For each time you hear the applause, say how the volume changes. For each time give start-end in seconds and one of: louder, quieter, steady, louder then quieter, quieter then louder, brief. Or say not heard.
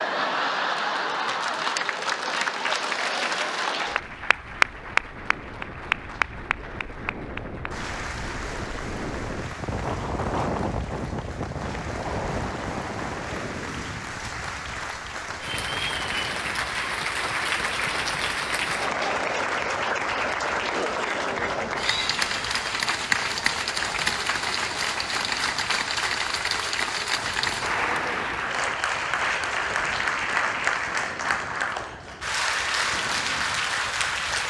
0.0-34.4 quieter then louder.